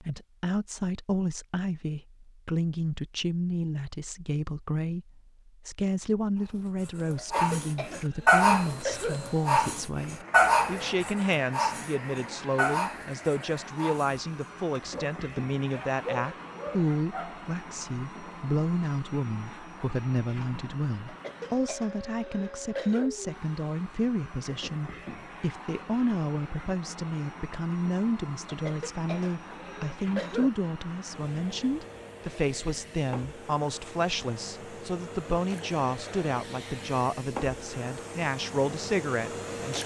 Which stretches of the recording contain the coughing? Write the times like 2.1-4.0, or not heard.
7.2-9.2, 21.1-23.1, 28.4-30.5.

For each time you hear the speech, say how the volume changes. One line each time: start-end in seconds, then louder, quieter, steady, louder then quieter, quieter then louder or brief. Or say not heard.
0.0-39.8 steady.